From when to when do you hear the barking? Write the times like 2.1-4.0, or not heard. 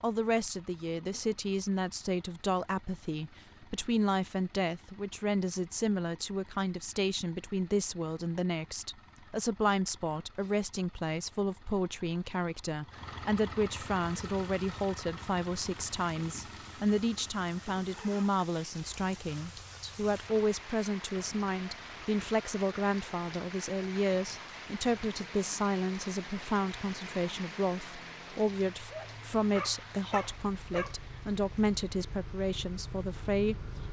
28.9-31.0.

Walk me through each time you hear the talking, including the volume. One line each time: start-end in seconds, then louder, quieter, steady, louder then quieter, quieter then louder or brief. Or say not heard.
0.0-33.8 steady.